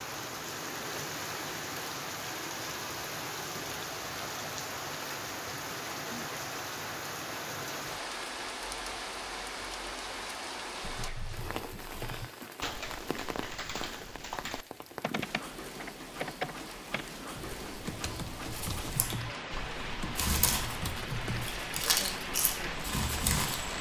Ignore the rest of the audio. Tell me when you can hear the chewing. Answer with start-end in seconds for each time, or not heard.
18.5-23.7.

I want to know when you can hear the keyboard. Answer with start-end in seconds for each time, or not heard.
10.8-21.5.